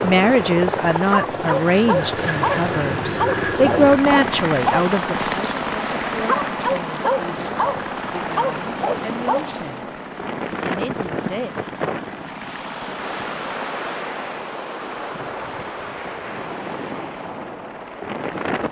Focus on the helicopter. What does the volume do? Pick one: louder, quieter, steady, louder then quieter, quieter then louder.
quieter.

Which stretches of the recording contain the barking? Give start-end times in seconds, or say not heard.
0.8-9.8.